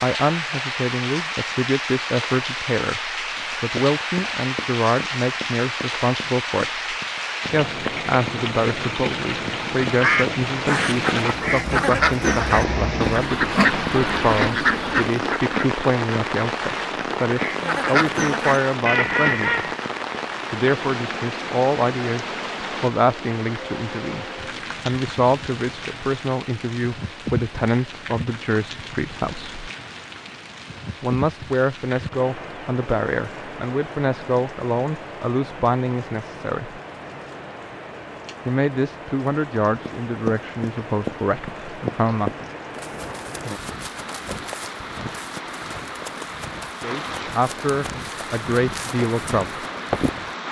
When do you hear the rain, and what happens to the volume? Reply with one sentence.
You can hear the rain from 0.0 to 50.4 s, getting quieter.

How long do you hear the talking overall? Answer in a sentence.
You can hear the talking for 41 seconds altogether.